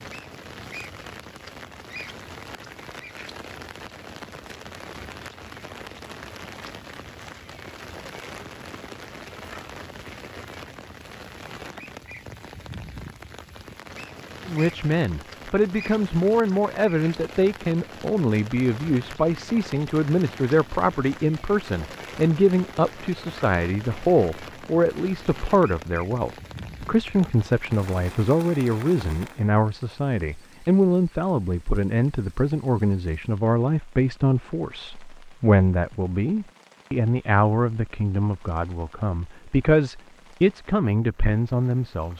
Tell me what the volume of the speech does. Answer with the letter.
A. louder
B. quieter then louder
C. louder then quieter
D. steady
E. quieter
D.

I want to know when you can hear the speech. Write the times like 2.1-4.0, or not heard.
14.4-42.1.